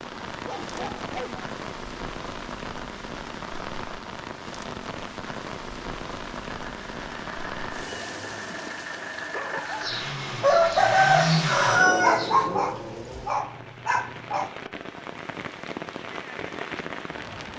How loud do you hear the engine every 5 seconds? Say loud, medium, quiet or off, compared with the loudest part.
off, medium, loud, off.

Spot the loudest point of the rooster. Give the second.
11 s.